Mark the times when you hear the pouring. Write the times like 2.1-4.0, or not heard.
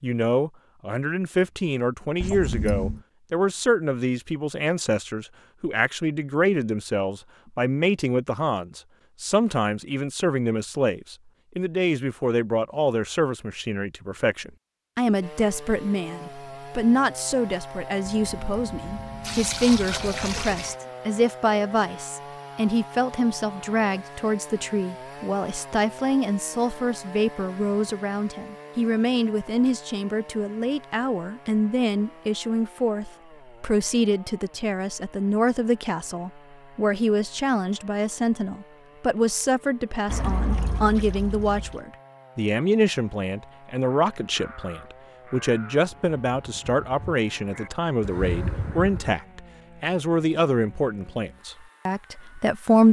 2.2-3.0, 18.2-20.8, 40.0-41.8.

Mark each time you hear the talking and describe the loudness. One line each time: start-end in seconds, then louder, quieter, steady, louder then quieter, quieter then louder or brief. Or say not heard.
0.0-52.8 steady.